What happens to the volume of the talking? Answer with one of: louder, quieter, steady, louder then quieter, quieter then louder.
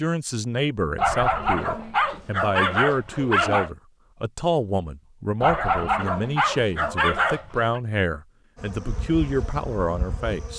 steady.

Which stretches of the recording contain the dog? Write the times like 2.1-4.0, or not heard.
0.9-3.7, 5.4-7.8.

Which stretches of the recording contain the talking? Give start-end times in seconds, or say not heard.
0.0-10.5.